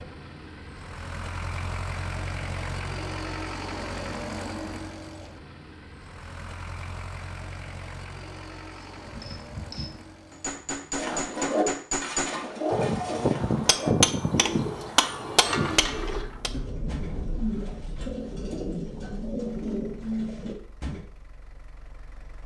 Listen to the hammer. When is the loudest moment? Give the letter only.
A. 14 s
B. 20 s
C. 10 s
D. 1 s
A.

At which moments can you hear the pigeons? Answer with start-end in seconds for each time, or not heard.
10.9-21.1.